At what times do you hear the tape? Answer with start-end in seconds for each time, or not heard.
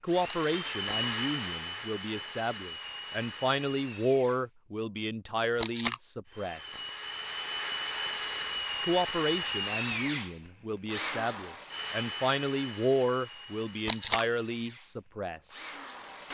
0.2-0.7, 5.5-6.0, 13.8-14.2.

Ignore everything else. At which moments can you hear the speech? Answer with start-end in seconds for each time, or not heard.
0.0-6.8, 8.8-15.6.